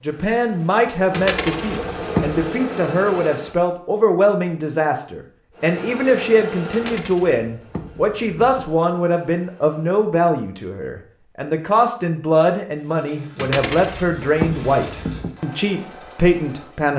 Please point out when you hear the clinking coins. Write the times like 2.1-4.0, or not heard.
1.1-2.5, 6.7-8.7, 13.3-15.3.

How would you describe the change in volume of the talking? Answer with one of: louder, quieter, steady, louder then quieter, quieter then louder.
steady.